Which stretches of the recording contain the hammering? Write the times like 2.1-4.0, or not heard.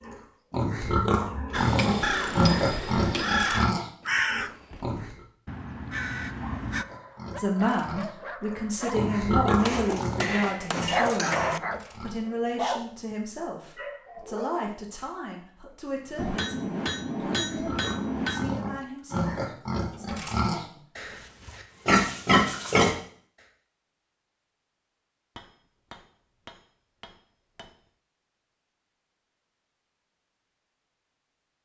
1.5-3.7, 9.6-11.6, 16.1-18.6, 25.4-27.8.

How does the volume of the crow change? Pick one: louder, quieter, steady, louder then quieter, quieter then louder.
quieter then louder.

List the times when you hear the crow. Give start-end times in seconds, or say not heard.
1.5-6.8.